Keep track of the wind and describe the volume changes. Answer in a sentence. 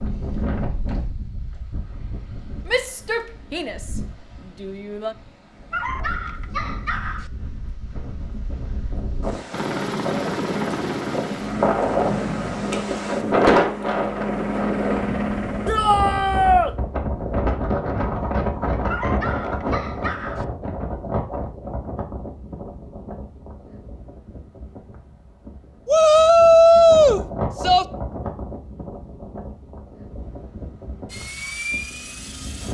The loudness of the wind goes up, then down.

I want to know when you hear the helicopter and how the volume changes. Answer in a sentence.
The helicopter can be heard from 9.5 to 15.7 s, getting quieter then louder; and briefly from 31.1 to 32.7 s.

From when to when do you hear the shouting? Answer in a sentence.
You can hear the shouting from 2.6 to 4.0 s, from 4.6 to 5.2 s, from 15.7 to 16.7 s and from 25.9 to 27.9 s.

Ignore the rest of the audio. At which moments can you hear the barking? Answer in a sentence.
You can hear the barking from 5.7 to 7.3 s and from 18.9 to 20.4 s.